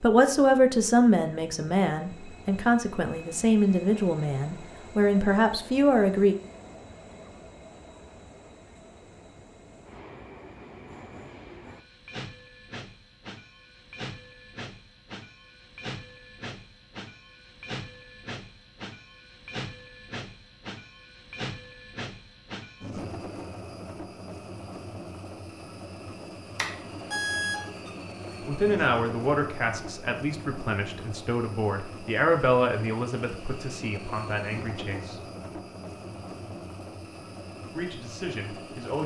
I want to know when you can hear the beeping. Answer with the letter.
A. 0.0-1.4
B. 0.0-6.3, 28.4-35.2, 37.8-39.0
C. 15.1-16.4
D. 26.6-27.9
D.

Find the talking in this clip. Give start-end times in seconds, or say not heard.
0.0-6.3, 28.4-35.2, 37.8-39.0.